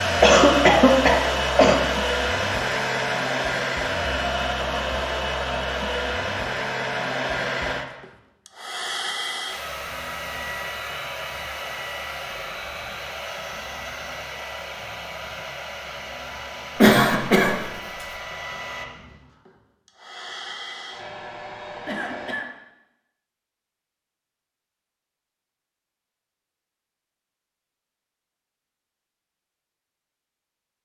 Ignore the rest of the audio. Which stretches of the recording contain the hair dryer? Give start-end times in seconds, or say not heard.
0.0-22.4.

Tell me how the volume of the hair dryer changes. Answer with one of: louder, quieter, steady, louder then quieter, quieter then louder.
quieter.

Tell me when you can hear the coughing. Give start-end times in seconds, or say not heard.
0.2-1.8, 16.8-17.6, 21.9-22.5.